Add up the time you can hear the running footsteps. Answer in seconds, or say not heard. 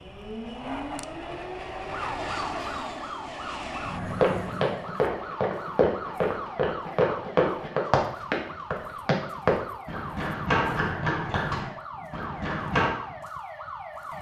9 s.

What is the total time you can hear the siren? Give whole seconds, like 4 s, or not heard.
14 s.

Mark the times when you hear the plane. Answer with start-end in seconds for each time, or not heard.
0.0-5.0.